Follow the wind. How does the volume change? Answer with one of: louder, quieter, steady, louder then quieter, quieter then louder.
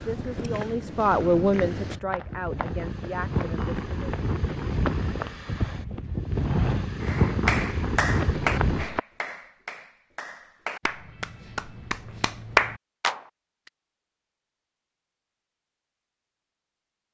louder.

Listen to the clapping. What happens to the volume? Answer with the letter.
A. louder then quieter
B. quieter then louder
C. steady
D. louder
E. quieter
B.